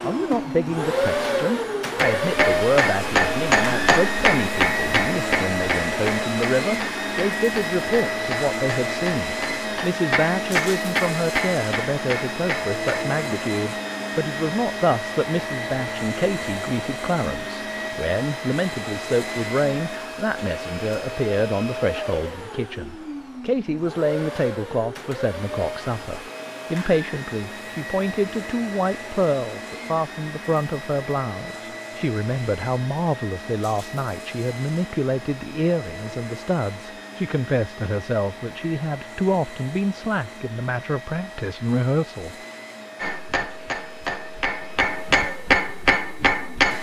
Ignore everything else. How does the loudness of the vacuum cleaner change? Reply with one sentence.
The volume of the vacuum cleaner goes down.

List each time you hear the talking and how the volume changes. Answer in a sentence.
You can hear the talking from 0.0 to 42.4 s, at a steady volume.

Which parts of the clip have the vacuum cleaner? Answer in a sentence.
You can hear the vacuum cleaner from 0.0 to 46.7 s.